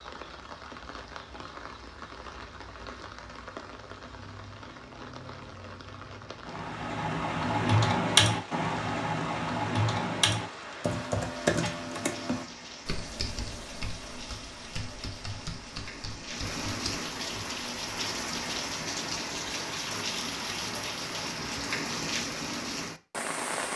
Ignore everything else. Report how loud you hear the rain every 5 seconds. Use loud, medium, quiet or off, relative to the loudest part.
medium, medium, medium, loud, loud.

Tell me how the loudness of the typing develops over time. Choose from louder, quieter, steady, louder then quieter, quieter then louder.
quieter.